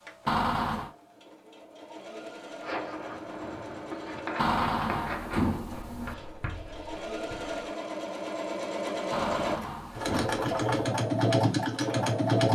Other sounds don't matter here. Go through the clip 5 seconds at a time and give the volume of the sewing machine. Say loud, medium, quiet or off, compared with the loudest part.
quiet, medium, loud.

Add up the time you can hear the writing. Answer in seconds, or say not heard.
5 s.